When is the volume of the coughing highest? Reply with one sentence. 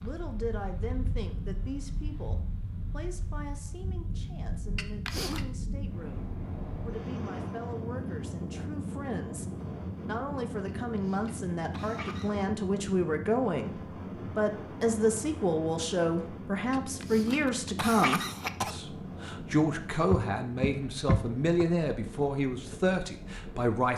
The loudest moment of the coughing is at 18 seconds.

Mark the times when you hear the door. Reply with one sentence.
The door can be heard from 20.1 to 21.6 s.